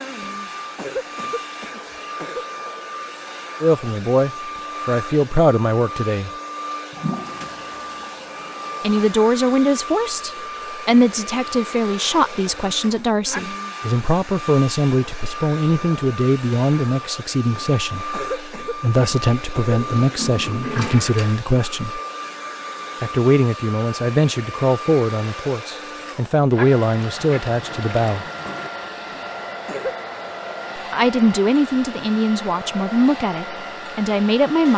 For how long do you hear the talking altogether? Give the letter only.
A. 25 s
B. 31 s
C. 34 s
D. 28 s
A.